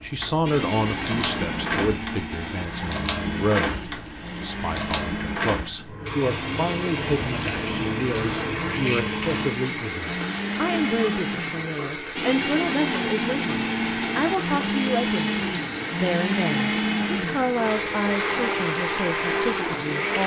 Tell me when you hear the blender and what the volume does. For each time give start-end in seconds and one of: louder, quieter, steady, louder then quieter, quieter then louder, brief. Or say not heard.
0.5-20.2 louder.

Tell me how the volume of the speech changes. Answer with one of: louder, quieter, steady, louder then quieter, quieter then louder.
steady.